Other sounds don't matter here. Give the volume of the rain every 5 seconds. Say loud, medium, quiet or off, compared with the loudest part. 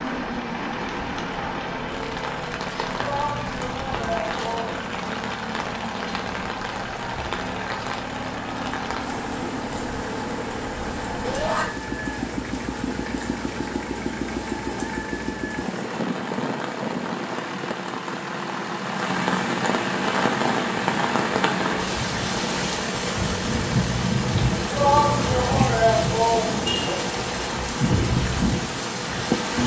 medium, medium, medium, medium, loud, loud.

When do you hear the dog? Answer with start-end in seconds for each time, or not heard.
not heard.